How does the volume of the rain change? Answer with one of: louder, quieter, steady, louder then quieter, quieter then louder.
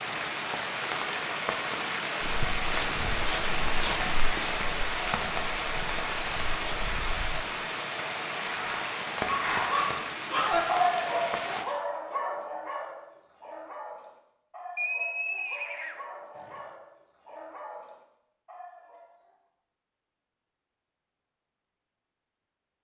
steady.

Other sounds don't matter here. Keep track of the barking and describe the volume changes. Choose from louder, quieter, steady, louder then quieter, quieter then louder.
quieter.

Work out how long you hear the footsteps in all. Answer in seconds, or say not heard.
5 s.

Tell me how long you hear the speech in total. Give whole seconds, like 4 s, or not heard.
not heard.